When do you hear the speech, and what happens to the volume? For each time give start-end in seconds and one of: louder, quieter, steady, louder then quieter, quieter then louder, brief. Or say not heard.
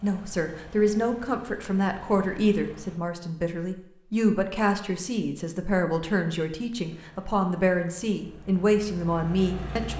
0.0-9.9 steady.